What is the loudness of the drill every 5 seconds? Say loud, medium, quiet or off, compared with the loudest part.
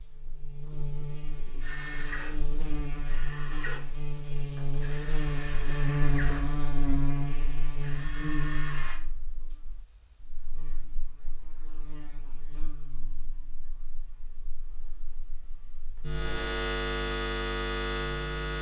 loud, loud, off, off.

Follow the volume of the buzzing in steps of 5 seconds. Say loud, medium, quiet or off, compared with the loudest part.
medium, loud, quiet, loud.